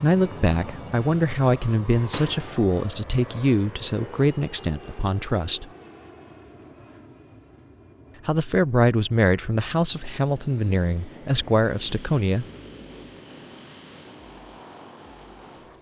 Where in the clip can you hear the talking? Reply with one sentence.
You can hear the talking from 0.0 to 5.7 s and from 8.2 to 12.4 s.